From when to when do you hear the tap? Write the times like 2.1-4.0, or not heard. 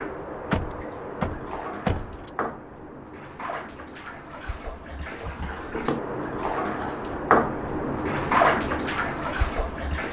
0.0-10.0.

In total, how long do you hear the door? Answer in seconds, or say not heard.
2 s.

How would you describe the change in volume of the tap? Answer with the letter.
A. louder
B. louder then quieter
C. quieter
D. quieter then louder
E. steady
A.